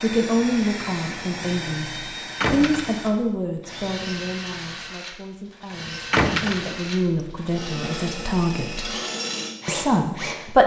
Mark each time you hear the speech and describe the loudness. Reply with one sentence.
The speech can be heard from 0.0 to 8.9 s, getting quieter then louder; and briefly from 9.7 to 10.6 s.